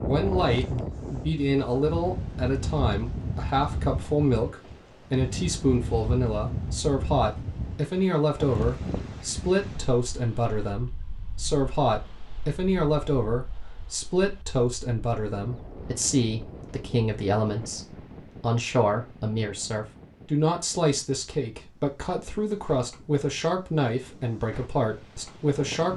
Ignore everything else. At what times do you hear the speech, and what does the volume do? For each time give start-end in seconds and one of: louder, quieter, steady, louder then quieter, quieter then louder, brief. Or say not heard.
0.0-25.9 steady.